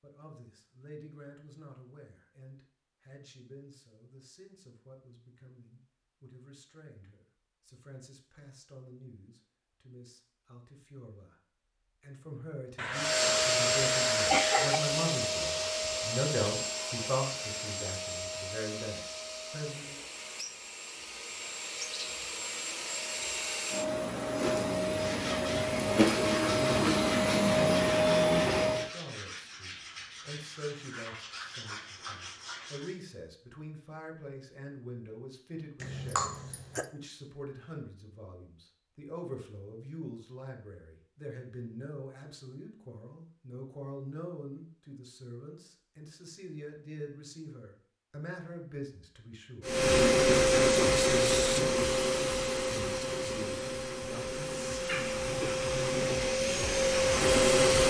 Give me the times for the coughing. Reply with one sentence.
The coughing can be heard from 12.8 to 14.8 s, from 35.8 to 36.9 s and from 54.9 to 55.5 s.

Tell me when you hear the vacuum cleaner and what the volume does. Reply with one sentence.
You can hear the vacuum cleaner from 12.9 to 28.9 s, getting quieter then louder; and from 49.6 to 57.8 s, getting quieter then louder.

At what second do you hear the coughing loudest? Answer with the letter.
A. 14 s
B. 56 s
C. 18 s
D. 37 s
A.